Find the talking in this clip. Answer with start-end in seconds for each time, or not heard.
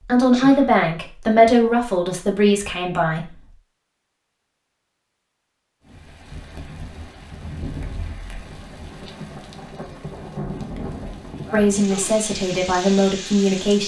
0.1-3.3, 11.5-13.8.